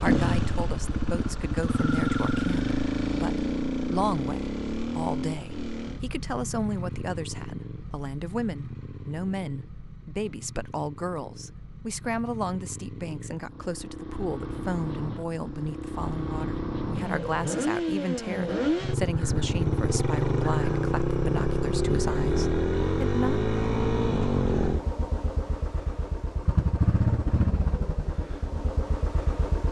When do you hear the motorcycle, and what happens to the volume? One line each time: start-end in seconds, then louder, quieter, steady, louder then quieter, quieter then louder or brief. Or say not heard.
0.0-29.6 quieter then louder.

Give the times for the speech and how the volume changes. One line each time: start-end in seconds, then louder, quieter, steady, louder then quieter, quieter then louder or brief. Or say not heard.
0.0-23.4 steady.